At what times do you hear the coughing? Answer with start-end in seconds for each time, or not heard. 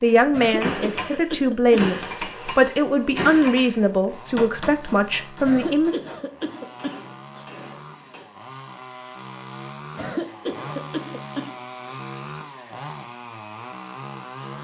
0.3-1.9, 5.5-7.5, 9.9-12.0.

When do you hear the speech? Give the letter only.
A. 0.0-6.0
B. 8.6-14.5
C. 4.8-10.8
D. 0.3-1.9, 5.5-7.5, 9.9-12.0
A.